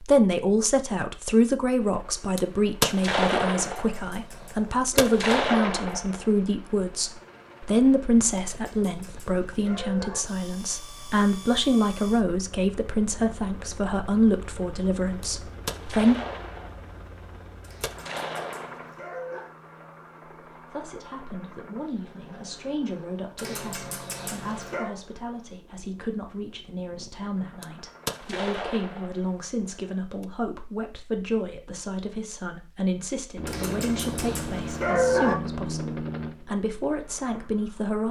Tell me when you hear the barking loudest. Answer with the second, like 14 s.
35 s.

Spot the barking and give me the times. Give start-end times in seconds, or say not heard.
3.6-5.2, 8.5-10.2, 17.6-19.5, 23.4-24.9, 33.5-35.4.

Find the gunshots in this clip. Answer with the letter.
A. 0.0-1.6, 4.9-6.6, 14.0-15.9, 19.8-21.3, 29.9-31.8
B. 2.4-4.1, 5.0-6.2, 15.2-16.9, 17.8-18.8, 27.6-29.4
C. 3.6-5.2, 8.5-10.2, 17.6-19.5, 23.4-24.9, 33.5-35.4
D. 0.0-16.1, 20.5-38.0
B.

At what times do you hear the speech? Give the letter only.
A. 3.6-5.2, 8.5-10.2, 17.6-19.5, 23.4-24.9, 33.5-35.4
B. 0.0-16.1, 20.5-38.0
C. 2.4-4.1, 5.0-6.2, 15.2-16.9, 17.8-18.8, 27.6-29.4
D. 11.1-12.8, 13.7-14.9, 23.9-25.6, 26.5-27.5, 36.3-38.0
B.